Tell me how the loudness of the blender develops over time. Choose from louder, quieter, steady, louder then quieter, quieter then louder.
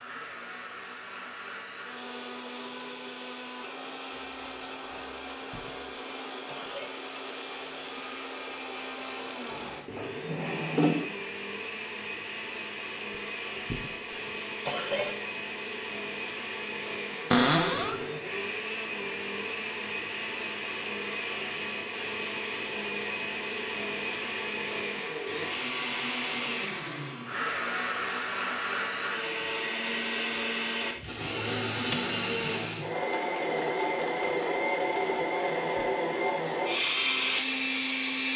louder.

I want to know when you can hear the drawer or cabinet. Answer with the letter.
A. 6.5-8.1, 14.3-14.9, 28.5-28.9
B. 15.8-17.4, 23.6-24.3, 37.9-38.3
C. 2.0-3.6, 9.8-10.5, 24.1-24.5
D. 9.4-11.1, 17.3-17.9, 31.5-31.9
D.